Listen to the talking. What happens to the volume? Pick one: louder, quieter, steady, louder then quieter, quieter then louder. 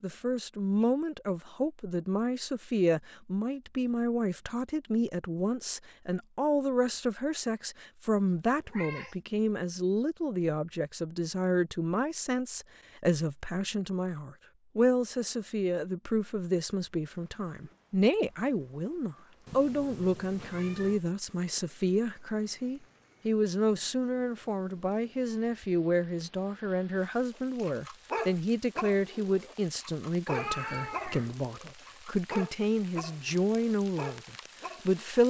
steady.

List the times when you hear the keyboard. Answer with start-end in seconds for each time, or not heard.
not heard.